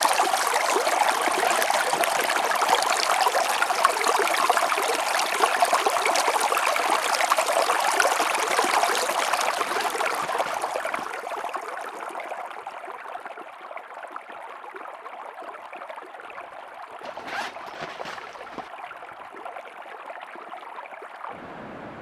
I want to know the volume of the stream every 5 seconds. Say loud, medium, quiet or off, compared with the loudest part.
loud, loud, medium, quiet, quiet.